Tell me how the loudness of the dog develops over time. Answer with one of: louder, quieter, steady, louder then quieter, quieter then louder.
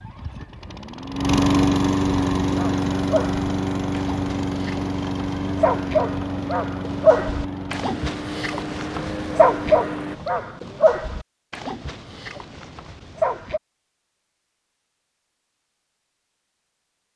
louder then quieter.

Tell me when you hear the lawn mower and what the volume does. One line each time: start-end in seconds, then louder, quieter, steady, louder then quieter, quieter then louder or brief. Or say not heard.
0.0-10.2 quieter.